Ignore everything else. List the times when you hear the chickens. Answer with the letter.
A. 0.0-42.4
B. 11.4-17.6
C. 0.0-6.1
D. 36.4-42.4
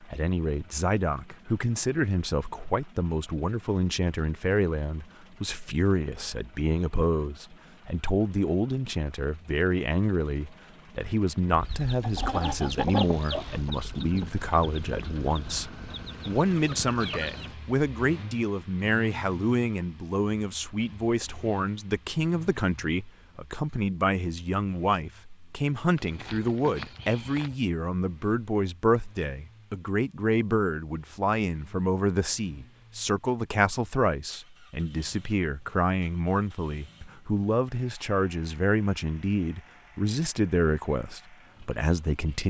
B.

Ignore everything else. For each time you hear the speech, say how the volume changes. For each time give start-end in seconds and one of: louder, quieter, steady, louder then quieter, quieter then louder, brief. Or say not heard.
0.0-42.4 steady.